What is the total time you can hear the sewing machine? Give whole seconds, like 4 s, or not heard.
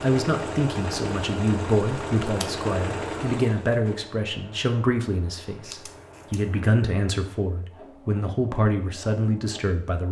10 s.